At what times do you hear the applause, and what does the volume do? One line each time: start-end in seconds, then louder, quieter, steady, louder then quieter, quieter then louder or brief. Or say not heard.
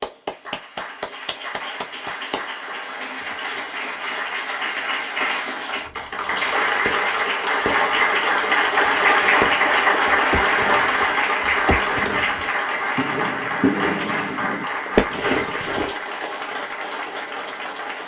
0.0-18.0 louder then quieter.